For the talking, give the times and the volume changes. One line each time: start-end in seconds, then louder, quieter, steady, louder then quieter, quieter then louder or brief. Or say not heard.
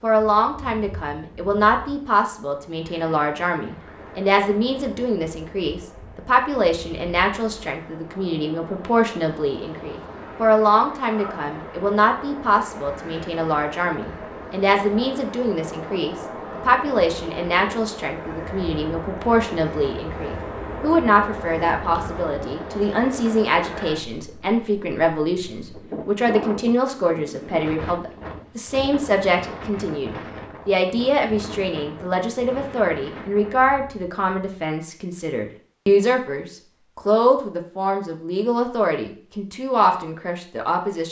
0.0-41.0 steady.